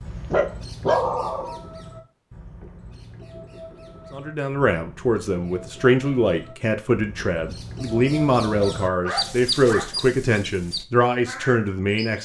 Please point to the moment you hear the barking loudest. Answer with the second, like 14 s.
1 s.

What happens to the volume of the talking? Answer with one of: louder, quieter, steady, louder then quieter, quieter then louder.
steady.